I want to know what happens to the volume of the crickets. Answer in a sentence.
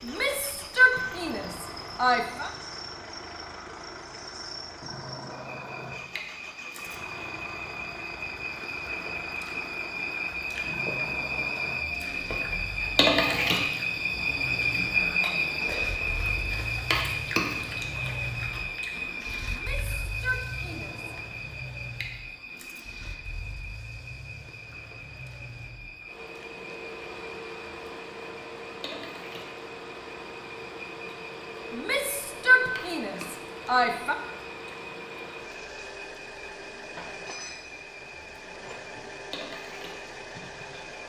The loudness of the crickets goes up, then down.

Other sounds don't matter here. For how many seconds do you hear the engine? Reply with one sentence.
The engine can be heard for 41 seconds in total.